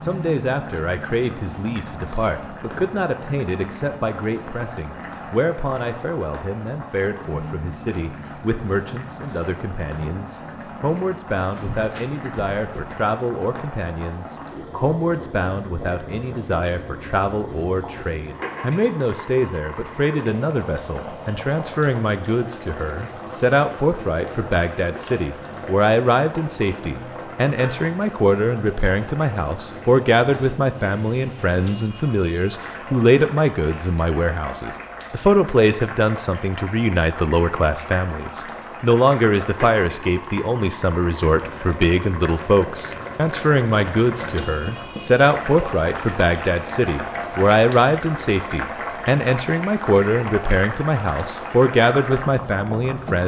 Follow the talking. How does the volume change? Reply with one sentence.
The volume of the talking goes up.